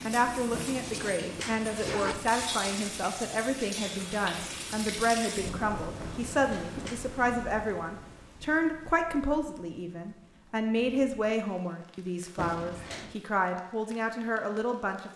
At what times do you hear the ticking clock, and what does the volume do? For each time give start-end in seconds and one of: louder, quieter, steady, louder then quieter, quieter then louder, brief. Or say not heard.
not heard.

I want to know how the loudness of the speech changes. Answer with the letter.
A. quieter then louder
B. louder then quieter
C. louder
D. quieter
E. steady
E.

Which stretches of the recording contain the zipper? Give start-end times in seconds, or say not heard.
0.5-2.2, 6.0-7.0, 12.3-13.2.